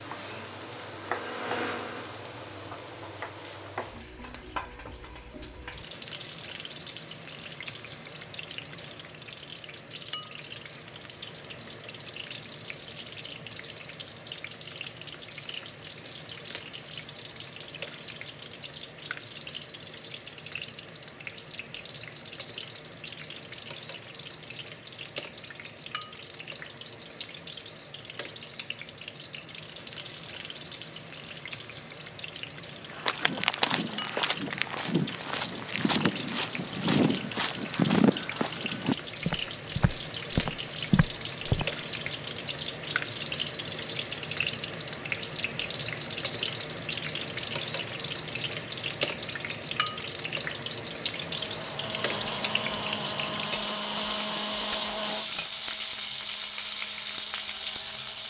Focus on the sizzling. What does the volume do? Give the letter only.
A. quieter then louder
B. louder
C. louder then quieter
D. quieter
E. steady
B.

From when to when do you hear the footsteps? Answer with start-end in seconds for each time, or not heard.
32.9-42.1.